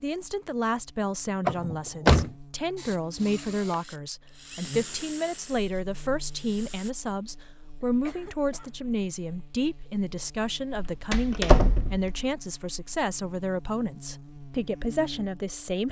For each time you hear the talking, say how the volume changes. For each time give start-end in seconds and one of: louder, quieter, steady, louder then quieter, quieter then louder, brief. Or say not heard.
0.0-15.8 steady.